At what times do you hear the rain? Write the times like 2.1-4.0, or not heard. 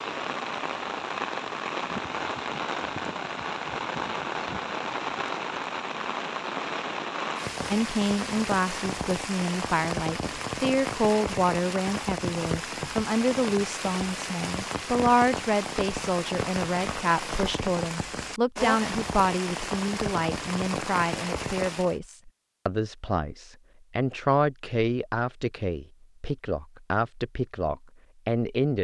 0.0-22.0.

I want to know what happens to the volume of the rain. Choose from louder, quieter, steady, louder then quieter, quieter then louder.
steady.